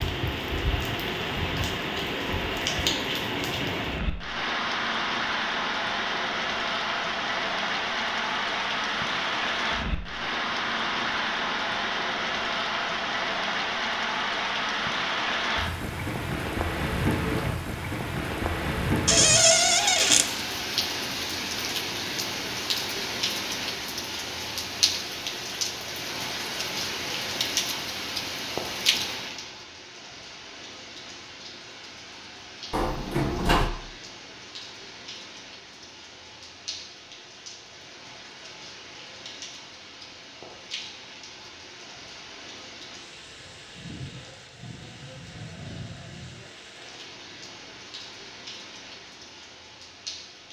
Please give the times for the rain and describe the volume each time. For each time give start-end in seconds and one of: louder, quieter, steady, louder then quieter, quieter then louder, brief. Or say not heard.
0.0-50.4 quieter.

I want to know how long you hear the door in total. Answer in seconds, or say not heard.
2 s.